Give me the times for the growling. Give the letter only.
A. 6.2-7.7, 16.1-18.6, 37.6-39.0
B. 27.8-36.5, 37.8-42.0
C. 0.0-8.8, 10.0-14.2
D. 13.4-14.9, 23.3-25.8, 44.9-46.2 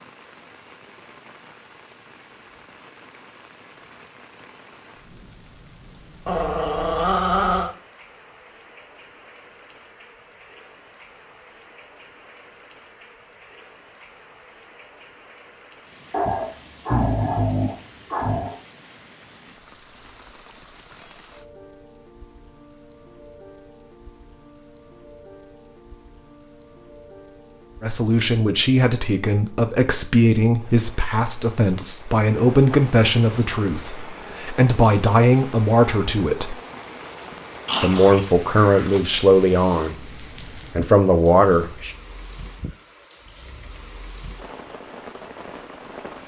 A.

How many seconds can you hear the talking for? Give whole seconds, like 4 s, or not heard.
13 s.